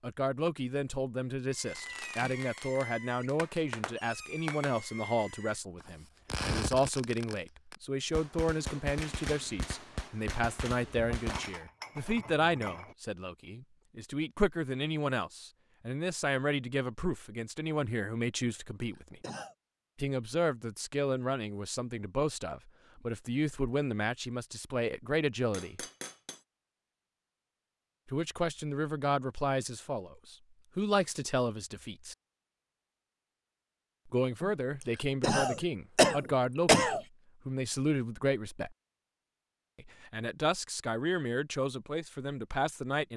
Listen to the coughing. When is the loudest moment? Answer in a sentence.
The volume of the coughing peaks at 37 seconds.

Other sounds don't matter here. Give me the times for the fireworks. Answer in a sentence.
The fireworks can be heard from 1.5 to 11.6 s.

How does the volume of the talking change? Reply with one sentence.
The volume of the talking stays about the same.